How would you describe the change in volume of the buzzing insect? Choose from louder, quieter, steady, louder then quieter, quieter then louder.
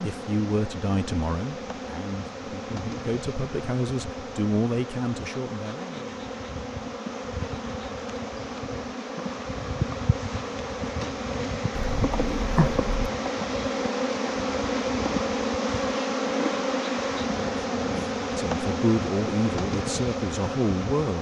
louder.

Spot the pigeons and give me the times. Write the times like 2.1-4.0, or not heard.
11.8-13.1.